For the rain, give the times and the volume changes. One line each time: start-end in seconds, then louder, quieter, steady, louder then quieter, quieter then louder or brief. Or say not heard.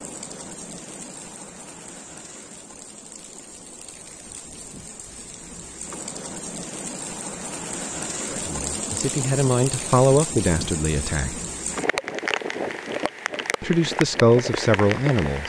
0.0-15.4 louder.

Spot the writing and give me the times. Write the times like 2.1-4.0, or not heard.
not heard.